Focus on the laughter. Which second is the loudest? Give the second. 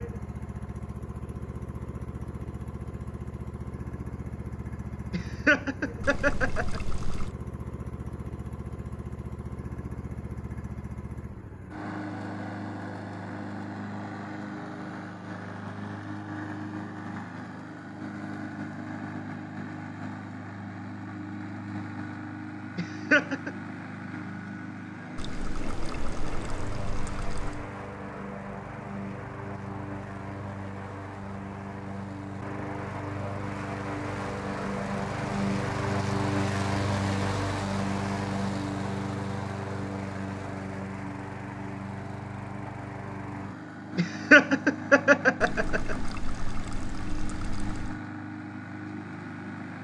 44 s.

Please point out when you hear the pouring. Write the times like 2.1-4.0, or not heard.
6.0-7.3, 25.1-27.6, 45.4-48.0.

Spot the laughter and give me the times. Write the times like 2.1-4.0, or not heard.
5.1-6.8, 22.8-23.5, 44.0-46.0.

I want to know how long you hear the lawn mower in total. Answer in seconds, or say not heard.
50 s.